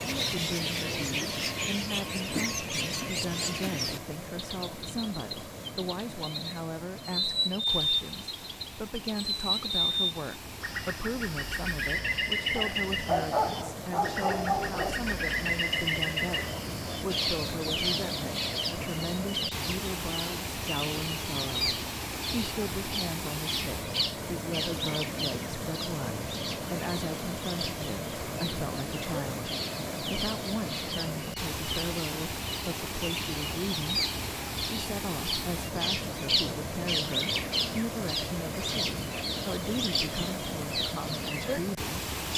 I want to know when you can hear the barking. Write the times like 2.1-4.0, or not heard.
12.6-15.0.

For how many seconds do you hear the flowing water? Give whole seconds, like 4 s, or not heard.
42 s.